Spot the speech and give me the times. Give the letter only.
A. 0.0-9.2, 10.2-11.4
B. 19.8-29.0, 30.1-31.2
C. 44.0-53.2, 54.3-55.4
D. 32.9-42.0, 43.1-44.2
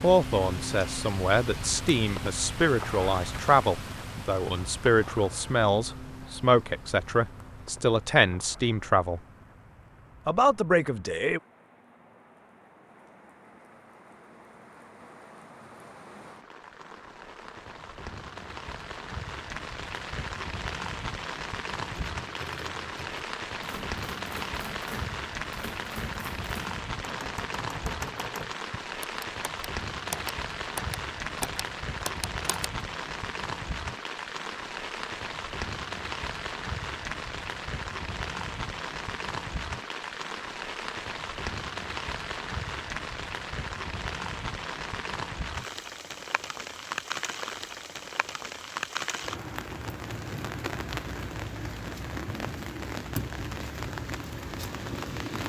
A.